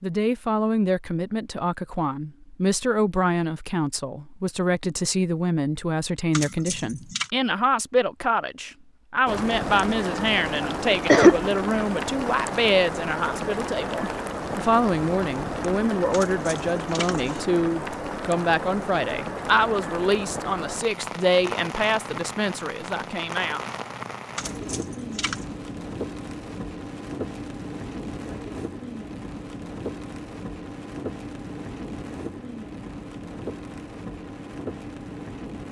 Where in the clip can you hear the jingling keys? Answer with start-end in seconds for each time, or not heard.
6.3-7.3, 16.1-17.4, 24.4-25.4.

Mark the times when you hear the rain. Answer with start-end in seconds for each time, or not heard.
9.2-35.6.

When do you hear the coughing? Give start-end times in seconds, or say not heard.
10.6-11.3.